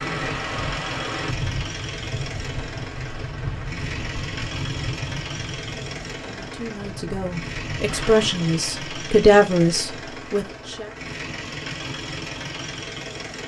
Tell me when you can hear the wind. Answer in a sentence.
You can hear the wind from 0.0 to 8.4 s.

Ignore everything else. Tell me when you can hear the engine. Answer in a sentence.
You can hear the engine from 0.0 to 13.4 s.